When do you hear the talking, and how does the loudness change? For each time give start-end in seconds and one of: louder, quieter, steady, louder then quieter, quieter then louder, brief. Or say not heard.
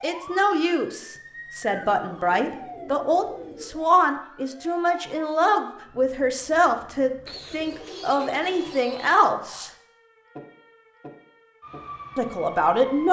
0.0-9.7 steady
12.2-13.0 brief.